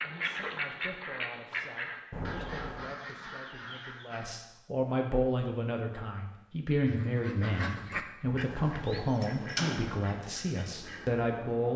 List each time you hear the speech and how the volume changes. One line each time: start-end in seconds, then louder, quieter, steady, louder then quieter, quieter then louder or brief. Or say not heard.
0.0-11.7 louder.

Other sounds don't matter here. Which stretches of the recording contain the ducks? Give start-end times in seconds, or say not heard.
0.0-4.2, 6.8-11.7.